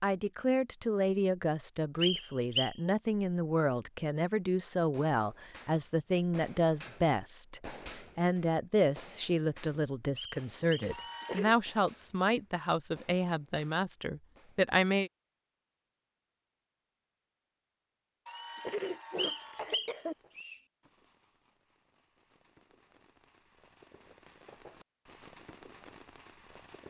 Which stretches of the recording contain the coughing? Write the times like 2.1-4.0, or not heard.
10.9-11.6, 18.2-20.1.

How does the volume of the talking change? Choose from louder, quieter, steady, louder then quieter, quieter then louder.
steady.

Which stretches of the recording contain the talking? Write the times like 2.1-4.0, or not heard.
0.0-15.1.